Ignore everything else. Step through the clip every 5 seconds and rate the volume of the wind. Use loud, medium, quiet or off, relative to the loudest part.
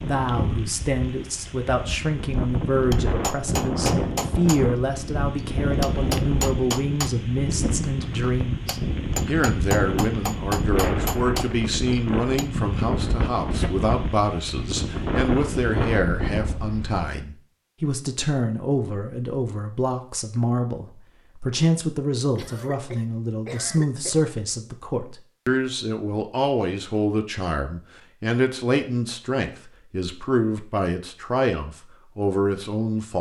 loud, loud, loud, loud, off, off, off.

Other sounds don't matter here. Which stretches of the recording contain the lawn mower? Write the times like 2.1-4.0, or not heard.
not heard.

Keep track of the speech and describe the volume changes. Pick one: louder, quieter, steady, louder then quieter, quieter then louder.
steady.